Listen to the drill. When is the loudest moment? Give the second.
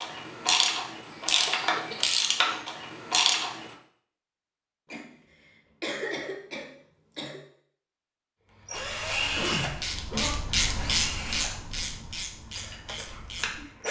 9 s.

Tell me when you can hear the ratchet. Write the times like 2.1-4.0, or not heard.
0.0-3.8, 8.7-13.7.